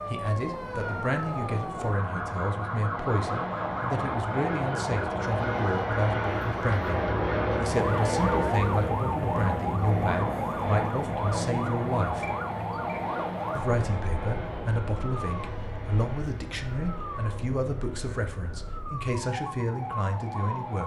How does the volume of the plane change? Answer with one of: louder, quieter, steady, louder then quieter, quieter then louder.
louder then quieter.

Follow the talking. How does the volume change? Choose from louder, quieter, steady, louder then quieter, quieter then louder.
steady.